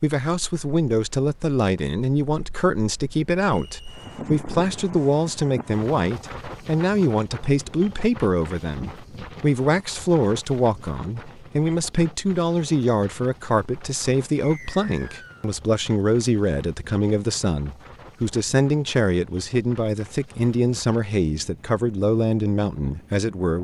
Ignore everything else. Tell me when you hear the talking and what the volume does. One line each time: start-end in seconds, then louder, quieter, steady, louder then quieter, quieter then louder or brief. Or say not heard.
0.0-23.6 steady.